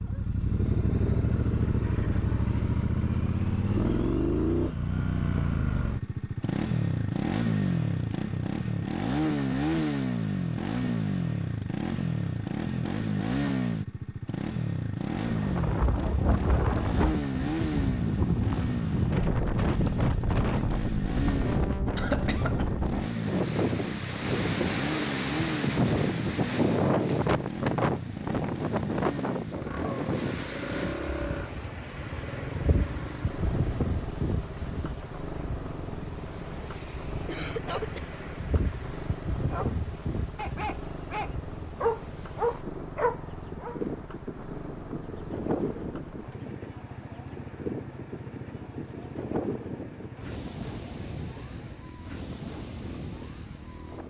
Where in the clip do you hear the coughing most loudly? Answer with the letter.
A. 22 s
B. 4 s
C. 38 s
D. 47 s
A.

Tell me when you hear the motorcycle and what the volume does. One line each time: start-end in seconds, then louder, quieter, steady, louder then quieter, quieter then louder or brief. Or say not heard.
0.0-54.0 quieter.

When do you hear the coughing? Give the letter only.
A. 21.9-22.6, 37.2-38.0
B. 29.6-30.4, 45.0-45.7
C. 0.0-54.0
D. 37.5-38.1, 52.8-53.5
A.